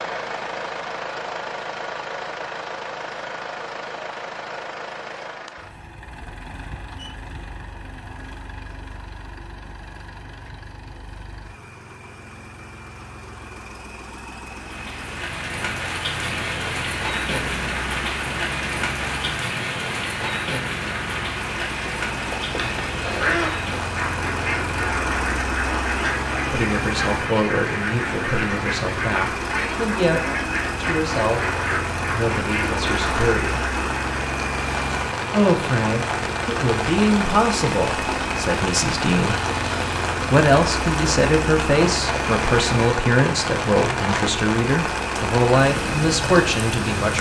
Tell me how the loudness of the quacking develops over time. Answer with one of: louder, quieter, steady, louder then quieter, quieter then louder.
steady.